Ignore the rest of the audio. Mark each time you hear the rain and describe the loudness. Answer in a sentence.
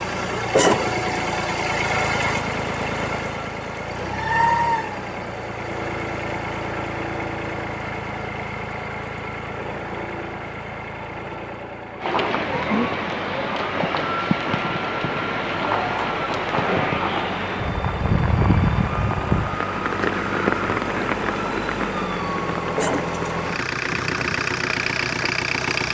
The rain can be heard from 12.0 to 25.8 s, getting quieter.